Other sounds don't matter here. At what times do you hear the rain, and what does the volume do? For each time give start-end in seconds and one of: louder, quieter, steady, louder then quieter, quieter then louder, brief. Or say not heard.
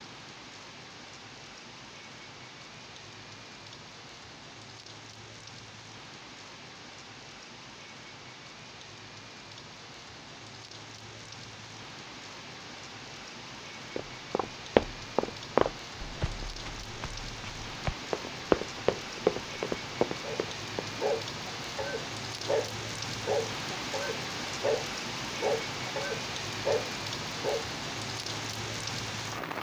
0.0-29.5 louder.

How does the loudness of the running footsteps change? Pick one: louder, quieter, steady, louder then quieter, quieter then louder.
quieter then louder.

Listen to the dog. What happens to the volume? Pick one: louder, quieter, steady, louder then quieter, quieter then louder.
steady.